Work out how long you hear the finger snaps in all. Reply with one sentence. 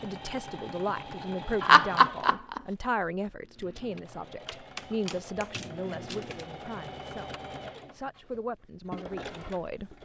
The finger snaps can be heard for 2 seconds in total.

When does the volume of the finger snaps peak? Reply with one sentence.
The volume of the finger snaps peaks at 2 seconds.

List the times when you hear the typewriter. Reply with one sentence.
The typewriter can be heard from 3.4 to 6.5 s.